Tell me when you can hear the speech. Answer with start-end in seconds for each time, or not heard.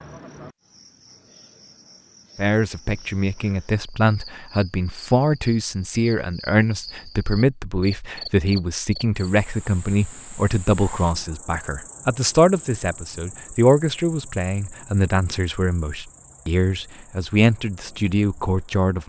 2.4-19.0.